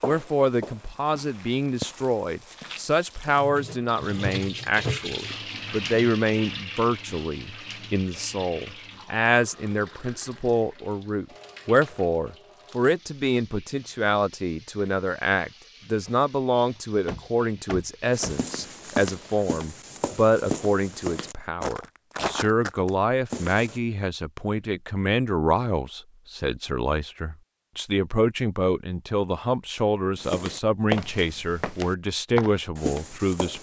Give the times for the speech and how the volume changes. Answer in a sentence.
You can hear the speech from 0.0 to 33.5 s, at a steady volume.